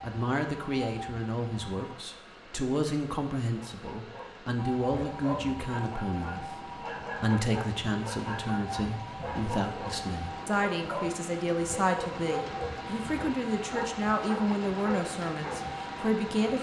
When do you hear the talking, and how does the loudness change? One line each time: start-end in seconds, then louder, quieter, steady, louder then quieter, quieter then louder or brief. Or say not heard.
0.0-16.5 steady.